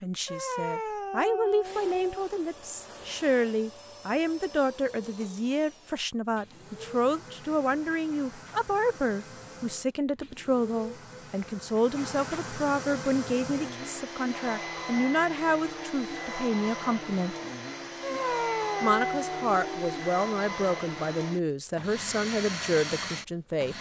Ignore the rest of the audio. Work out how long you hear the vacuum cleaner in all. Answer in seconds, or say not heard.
22 s.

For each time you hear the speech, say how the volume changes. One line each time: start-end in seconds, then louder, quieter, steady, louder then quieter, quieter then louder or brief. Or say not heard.
0.0-17.4 steady
18.8-23.7 steady.